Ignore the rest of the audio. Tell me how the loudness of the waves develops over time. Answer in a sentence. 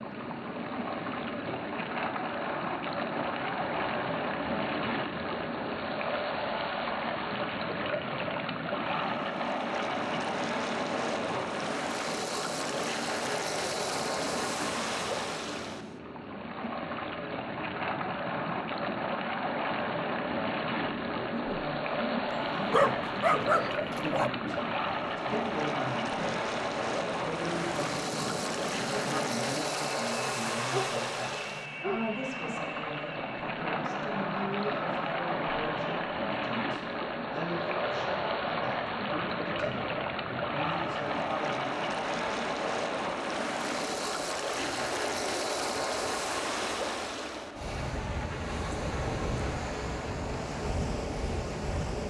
The volume of the waves stays about the same.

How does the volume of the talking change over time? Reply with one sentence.
The volume of the talking stays about the same.